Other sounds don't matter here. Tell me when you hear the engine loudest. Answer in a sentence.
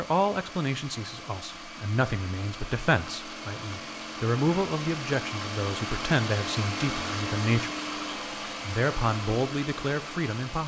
The loudest moment of the engine is at 7 seconds.